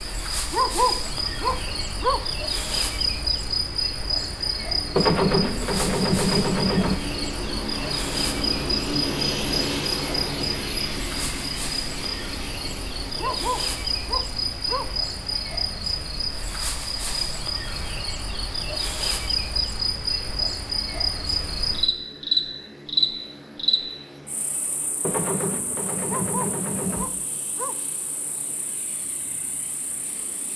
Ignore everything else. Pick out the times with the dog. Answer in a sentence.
The dog can be heard from 0.5 to 2.2 s, from 13.2 to 14.9 s and from 26.1 to 27.8 s.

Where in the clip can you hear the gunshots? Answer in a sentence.
You can hear the gunshots from 5.0 to 7.0 s and from 25.0 to 27.1 s.